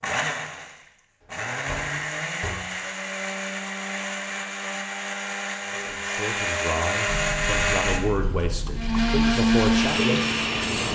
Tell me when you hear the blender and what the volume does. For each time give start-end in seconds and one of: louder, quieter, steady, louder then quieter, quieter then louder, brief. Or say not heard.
0.0-10.9 louder.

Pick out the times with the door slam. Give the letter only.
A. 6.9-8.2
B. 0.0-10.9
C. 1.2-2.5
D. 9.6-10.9
C.